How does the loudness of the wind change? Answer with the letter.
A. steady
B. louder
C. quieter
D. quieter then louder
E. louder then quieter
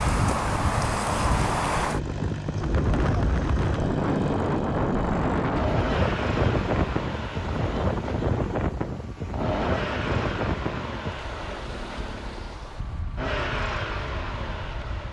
C.